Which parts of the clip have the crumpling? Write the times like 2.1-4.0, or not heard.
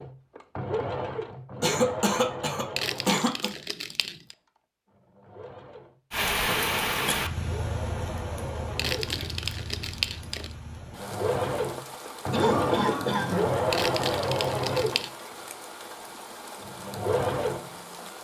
2.8-4.3, 8.8-10.6, 13.7-15.1.